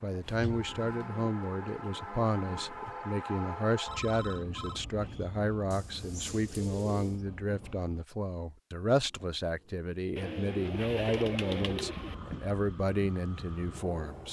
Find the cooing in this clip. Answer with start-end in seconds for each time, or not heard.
0.2-3.0, 5.7-7.2, 10.2-12.2.